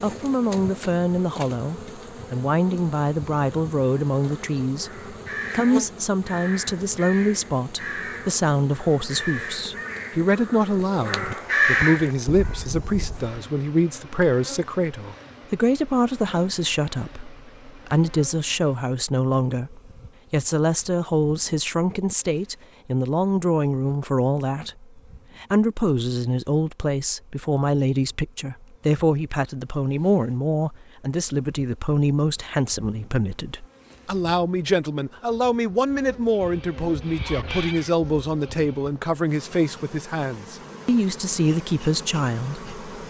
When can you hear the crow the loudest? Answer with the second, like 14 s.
12 s.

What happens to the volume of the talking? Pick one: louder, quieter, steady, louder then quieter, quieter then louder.
steady.